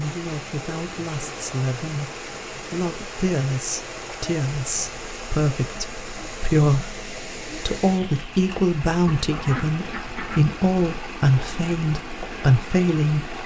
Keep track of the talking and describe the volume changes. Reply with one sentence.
The volume of the talking goes up.